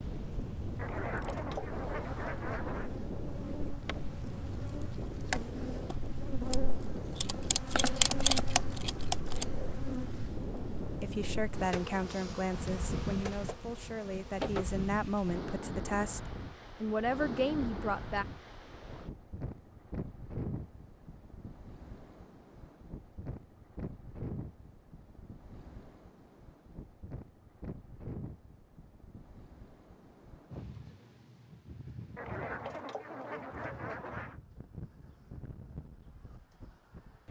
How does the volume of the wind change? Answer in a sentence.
The loudness of the wind goes down.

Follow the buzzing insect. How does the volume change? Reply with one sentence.
The loudness of the buzzing insect goes up, then down.